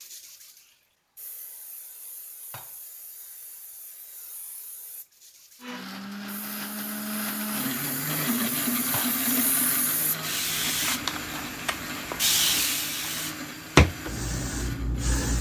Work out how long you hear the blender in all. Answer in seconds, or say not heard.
10 s.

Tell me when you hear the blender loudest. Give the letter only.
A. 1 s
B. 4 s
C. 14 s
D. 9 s
D.